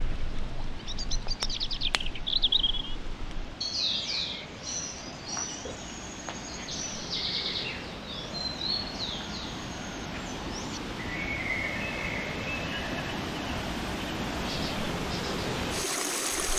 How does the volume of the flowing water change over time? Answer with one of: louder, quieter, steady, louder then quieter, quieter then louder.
louder.